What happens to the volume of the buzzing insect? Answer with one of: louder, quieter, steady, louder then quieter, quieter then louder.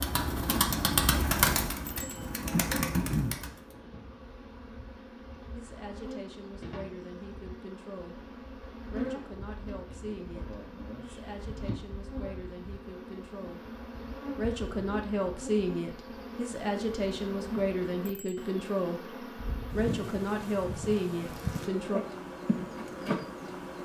louder.